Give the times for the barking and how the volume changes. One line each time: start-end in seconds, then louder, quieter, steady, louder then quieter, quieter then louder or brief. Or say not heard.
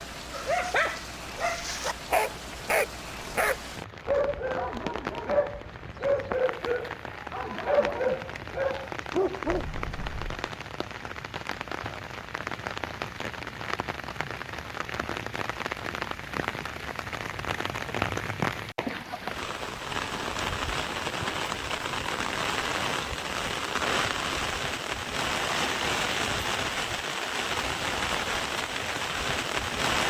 0.3-9.7 steady.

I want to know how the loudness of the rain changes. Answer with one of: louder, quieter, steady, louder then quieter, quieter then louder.
louder.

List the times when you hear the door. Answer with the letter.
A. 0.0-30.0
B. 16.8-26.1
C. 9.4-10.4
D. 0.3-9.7
C.